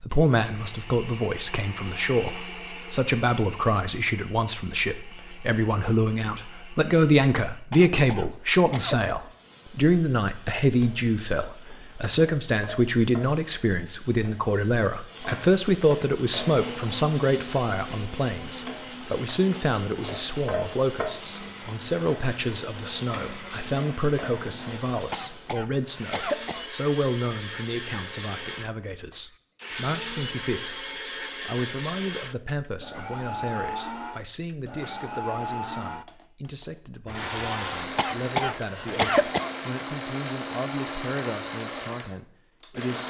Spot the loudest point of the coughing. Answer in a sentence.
The loudest moment of the coughing is at 39 seconds.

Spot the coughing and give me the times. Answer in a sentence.
The coughing can be heard from 7.7 to 9.1 s, from 25.1 to 26.6 s and from 38.0 to 39.5 s.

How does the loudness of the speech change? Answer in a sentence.
The loudness of the speech goes down.